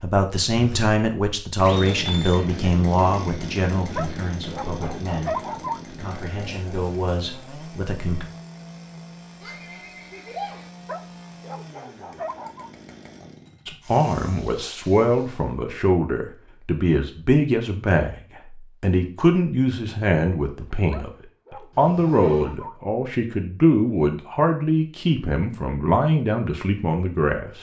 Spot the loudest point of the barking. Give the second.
5 s.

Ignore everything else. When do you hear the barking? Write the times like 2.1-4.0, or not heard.
4.0-5.8, 10.8-12.7, 20.9-22.8.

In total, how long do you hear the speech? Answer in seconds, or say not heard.
22 s.